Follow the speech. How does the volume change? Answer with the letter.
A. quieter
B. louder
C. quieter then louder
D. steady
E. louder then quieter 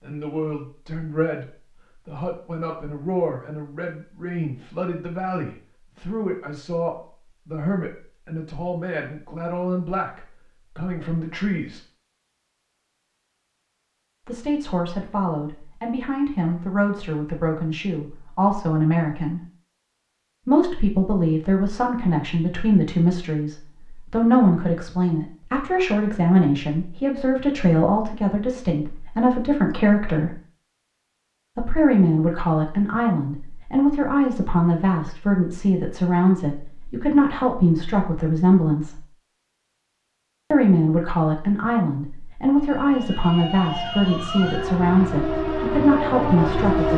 B.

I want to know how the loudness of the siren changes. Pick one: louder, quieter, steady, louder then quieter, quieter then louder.
louder.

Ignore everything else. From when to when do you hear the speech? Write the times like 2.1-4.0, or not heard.
0.0-11.8, 14.2-19.4, 20.4-30.4, 31.6-39.0, 40.5-46.9.